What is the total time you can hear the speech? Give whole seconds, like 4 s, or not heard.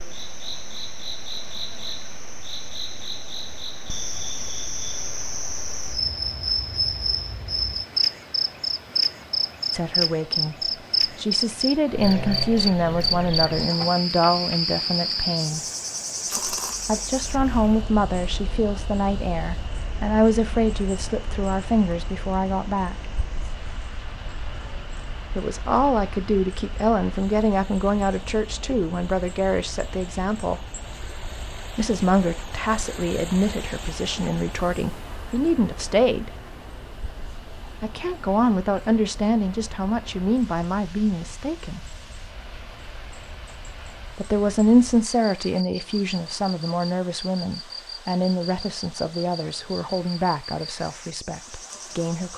34 s.